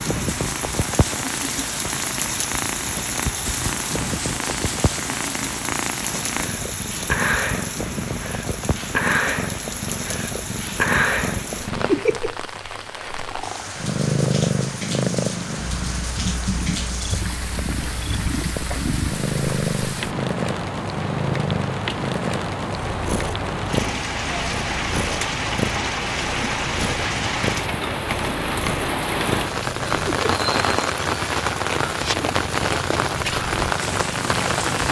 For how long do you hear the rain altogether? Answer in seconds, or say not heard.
35 s.